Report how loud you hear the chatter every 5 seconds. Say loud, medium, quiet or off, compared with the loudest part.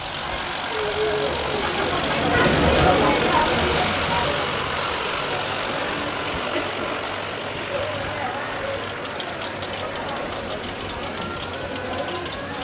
loud, medium, medium.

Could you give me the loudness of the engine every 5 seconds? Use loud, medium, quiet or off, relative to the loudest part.
loud, loud, medium.